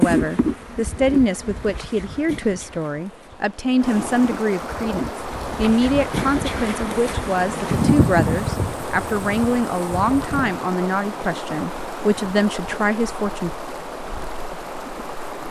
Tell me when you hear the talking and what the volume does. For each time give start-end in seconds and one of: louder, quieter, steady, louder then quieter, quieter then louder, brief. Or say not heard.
0.0-13.5 steady.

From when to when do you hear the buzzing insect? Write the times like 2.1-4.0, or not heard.
0.0-10.5.